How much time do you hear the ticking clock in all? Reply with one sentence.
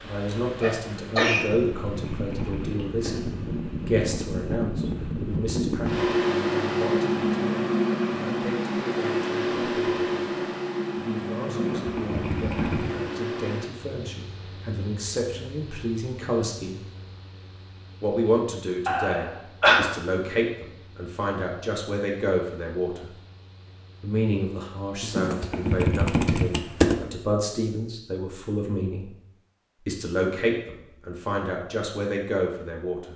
You can't hear the ticking clock here.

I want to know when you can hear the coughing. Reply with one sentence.
The coughing can be heard from 0.6 to 1.4 s and from 18.9 to 19.9 s.